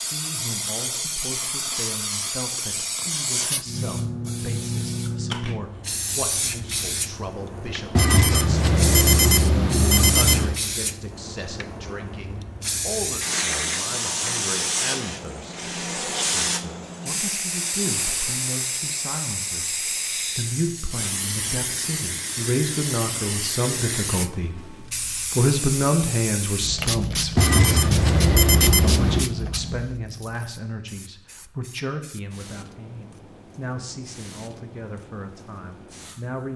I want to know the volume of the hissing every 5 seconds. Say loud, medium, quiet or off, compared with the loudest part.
loud, loud, loud, loud, loud, loud, quiet, quiet.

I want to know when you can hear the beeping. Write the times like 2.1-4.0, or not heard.
8.0-10.6, 27.4-29.2.